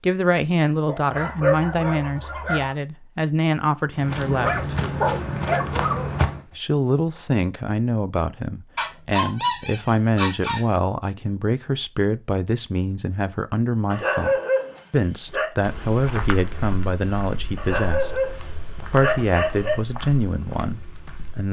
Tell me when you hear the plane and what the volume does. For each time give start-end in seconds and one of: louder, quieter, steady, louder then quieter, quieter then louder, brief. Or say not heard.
not heard.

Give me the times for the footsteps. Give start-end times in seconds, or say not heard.
3.9-6.4, 15.6-21.4.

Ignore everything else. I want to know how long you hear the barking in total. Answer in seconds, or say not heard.
10 s.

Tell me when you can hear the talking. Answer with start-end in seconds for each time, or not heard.
0.0-4.7, 6.5-21.4.